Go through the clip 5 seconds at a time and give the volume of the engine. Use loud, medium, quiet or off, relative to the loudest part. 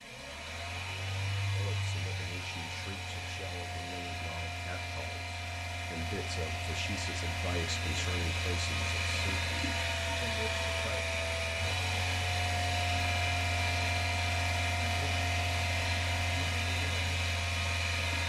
medium, loud, loud, loud.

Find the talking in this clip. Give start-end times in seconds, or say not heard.
1.5-11.1.